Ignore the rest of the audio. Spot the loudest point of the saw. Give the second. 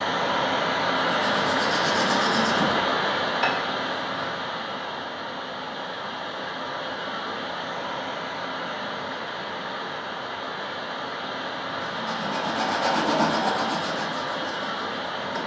13 s.